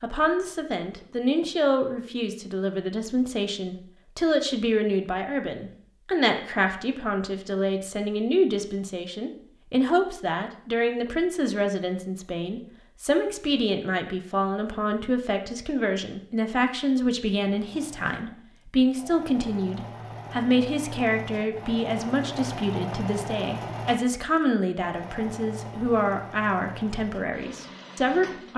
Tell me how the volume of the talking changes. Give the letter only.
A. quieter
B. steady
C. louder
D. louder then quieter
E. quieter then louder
B.